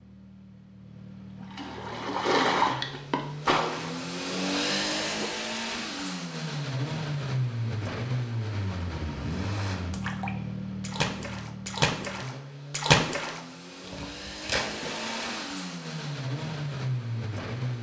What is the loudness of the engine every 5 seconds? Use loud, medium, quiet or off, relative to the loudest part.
loud, loud, medium, loud.